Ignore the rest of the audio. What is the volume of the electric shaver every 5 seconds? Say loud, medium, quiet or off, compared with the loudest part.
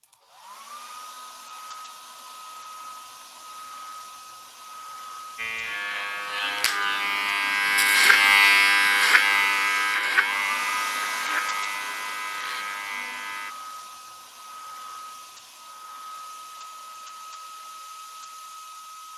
off, loud, medium, off.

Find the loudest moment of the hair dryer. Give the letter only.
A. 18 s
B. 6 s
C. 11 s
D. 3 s
C.